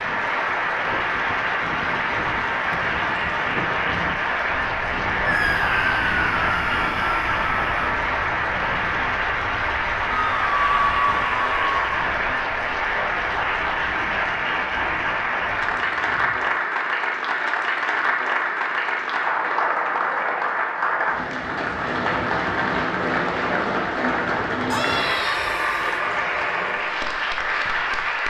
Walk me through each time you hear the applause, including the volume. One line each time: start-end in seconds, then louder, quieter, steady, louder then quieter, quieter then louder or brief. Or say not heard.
0.0-28.2 steady.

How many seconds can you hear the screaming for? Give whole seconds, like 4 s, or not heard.
6 s.